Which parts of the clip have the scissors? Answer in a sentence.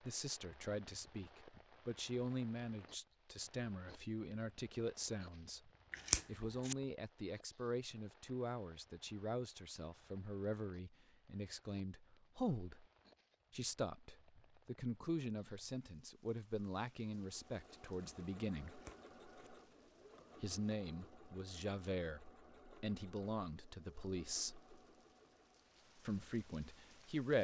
You can hear the scissors from 5.9 to 6.8 s and from 18.6 to 19.5 s.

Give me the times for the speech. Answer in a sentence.
The speech can be heard from 0.0 to 12.8 s, from 13.5 to 18.8 s, from 20.4 to 24.6 s and from 26.1 to 27.3 s.